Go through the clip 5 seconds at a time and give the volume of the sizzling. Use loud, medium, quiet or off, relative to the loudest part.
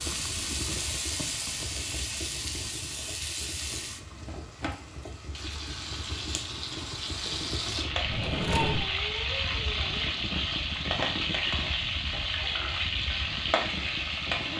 medium, loud, loud.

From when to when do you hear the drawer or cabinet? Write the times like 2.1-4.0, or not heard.
8.1-8.9.